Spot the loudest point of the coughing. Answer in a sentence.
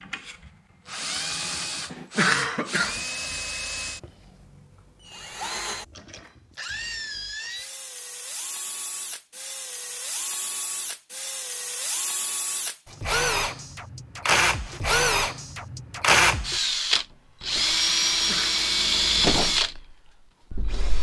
The volume of the coughing peaks at 2 seconds.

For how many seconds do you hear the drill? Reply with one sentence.
You can hear the drill for 21 seconds altogether.